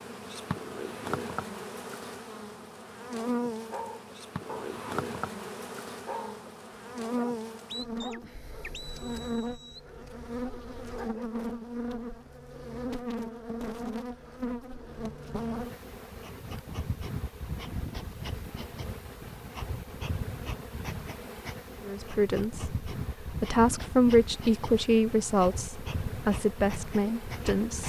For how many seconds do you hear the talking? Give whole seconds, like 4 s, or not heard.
6 s.